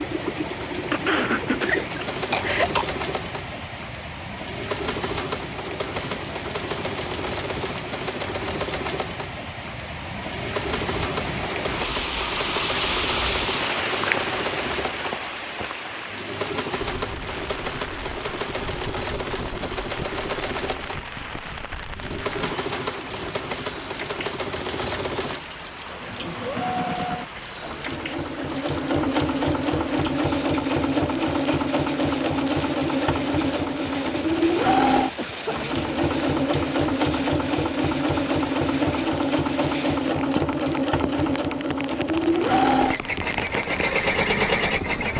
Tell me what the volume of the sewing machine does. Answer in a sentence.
The loudness of the sewing machine goes up.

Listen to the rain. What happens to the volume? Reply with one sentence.
The volume of the rain goes up, then down.